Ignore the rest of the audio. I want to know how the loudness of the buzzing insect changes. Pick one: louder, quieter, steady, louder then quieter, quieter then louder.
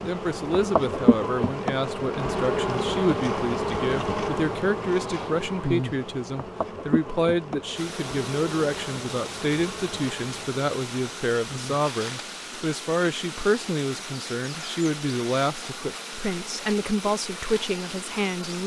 quieter.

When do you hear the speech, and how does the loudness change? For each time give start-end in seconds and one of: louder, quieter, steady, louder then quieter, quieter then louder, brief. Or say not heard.
0.0-18.6 steady.